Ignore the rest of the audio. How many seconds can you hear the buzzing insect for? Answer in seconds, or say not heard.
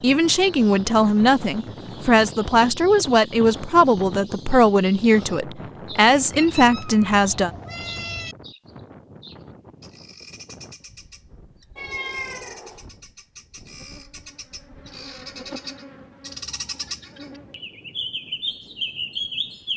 4 s.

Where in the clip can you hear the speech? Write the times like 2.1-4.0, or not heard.
0.0-7.5.